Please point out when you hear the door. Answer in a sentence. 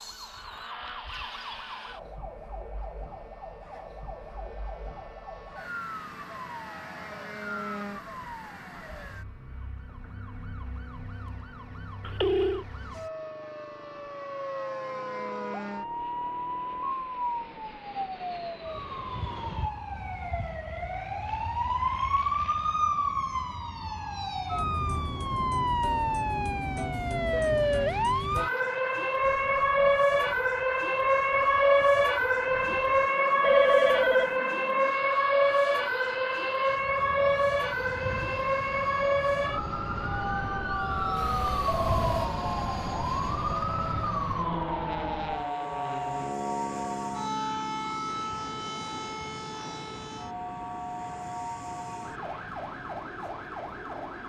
The door can't be heard in this clip.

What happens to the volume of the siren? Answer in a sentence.
The loudness of the siren goes up, then down.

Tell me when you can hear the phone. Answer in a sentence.
You can hear the phone from 12.0 to 12.7 s, from 33.4 to 34.4 s and from 41.1 to 42.3 s.